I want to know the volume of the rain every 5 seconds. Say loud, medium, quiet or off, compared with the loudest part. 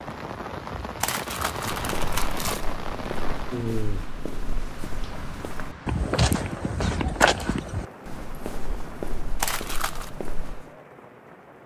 loud, medium, quiet.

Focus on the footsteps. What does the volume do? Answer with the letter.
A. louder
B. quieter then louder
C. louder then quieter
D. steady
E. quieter
C.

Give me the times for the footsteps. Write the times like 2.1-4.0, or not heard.
1.7-10.7.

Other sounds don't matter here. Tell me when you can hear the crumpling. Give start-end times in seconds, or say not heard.
1.0-2.6, 9.4-10.1.